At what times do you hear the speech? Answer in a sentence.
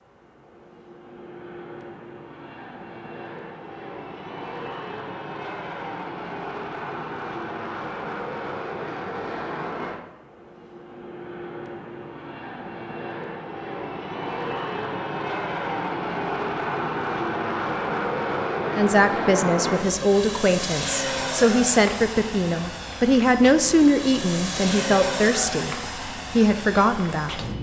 You can hear the speech from 18.8 to 27.4 s.